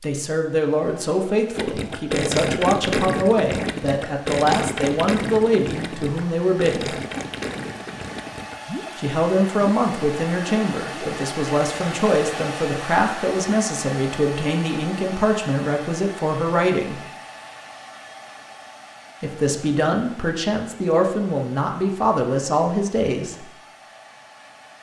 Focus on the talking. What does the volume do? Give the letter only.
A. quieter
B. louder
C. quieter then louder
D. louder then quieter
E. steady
E.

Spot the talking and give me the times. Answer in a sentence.
The talking can be heard from 0.0 to 7.0 s, from 8.9 to 17.0 s and from 19.2 to 23.5 s.